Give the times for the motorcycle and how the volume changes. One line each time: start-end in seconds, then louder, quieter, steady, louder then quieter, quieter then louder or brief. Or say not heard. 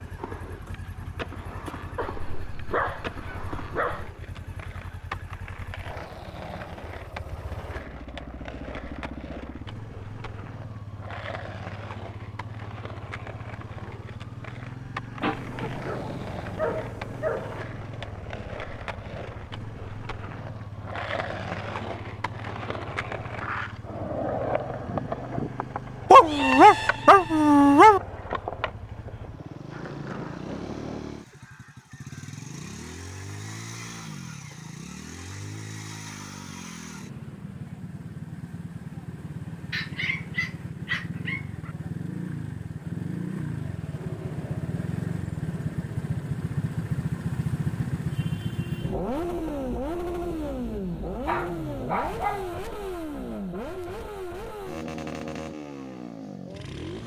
0.0-57.0 louder.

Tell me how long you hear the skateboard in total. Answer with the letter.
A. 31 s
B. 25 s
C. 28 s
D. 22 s
A.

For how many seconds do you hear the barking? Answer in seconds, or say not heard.
10 s.